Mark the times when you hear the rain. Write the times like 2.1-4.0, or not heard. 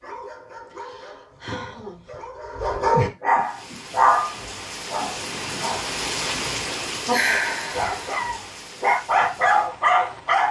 3.4-10.4.